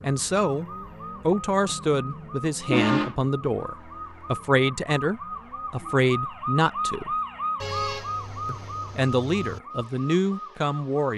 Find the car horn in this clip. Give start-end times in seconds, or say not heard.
1.6-3.1, 7.6-9.6.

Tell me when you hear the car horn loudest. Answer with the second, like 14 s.
3 s.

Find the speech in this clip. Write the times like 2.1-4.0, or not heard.
0.0-0.7, 1.2-7.2, 8.4-11.1.